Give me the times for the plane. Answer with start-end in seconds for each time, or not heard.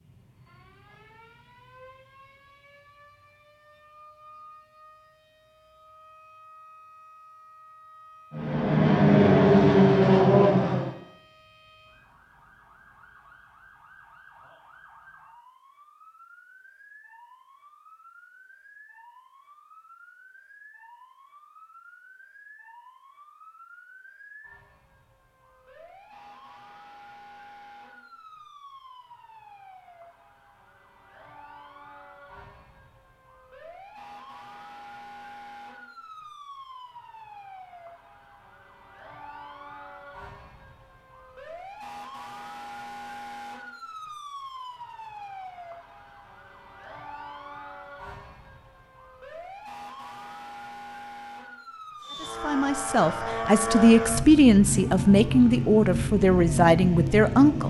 8.3-10.9, 52.0-57.6.